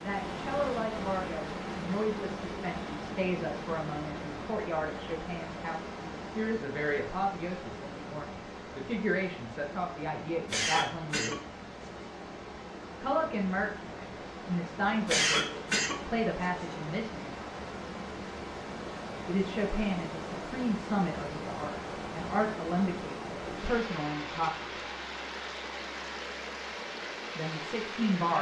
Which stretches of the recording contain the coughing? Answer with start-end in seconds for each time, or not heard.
10.4-12.1, 15.1-16.8.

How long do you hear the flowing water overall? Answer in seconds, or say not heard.
28 s.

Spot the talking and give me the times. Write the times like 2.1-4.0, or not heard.
0.0-11.4, 13.0-17.4, 19.2-24.9, 27.4-28.3.